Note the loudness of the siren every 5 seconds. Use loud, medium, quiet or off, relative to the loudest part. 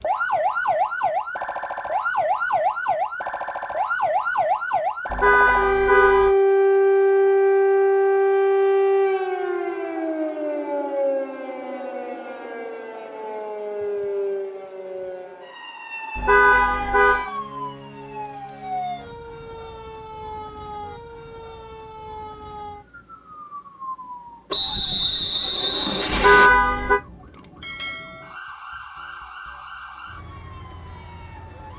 medium, loud, medium, quiet, quiet, quiet, quiet.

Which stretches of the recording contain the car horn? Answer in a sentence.
You can hear the car horn from 5.1 to 6.3 s, from 16.1 to 17.3 s and from 26.1 to 27.0 s.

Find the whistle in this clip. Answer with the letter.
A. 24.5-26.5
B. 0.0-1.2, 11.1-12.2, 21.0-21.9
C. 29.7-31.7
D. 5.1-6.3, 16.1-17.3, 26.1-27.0
A.